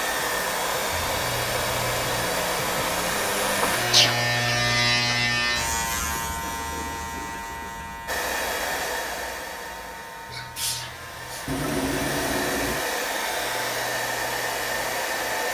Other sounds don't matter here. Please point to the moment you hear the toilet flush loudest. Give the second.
12 s.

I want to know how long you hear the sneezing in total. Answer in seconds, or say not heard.
2 s.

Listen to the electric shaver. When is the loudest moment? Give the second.
5 s.